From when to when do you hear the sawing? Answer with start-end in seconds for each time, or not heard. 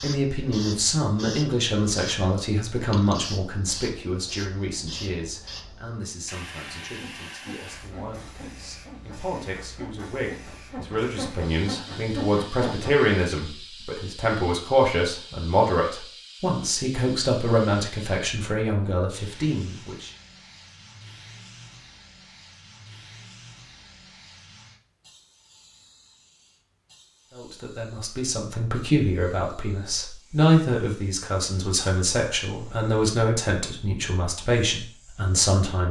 6.7-13.5.